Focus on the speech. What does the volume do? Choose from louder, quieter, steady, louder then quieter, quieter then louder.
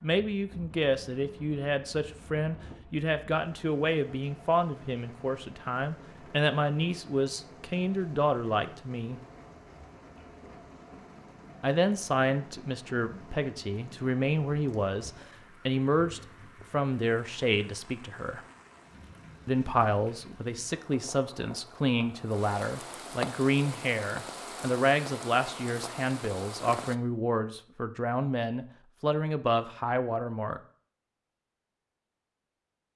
steady.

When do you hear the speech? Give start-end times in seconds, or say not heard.
0.0-9.2, 11.6-18.4, 19.4-30.6.